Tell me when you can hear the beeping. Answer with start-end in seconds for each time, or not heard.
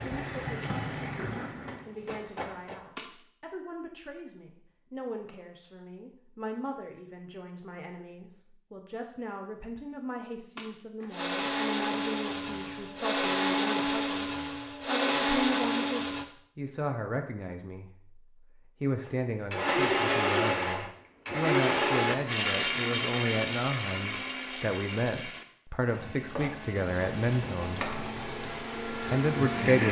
not heard.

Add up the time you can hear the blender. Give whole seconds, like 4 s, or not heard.
16 s.